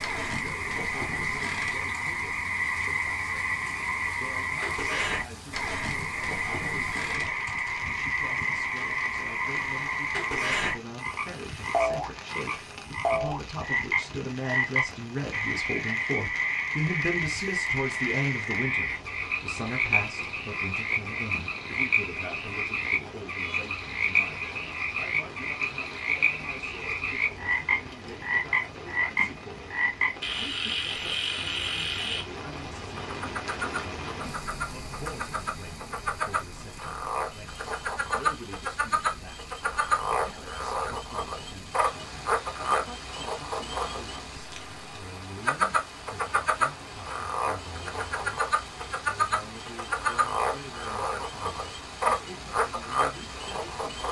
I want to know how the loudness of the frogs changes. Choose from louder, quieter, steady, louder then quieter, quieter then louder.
steady.